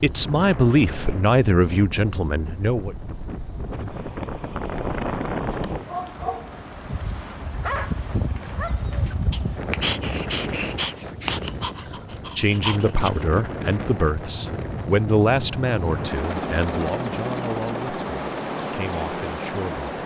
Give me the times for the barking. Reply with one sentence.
You can hear the barking from 5.7 to 13.2 s.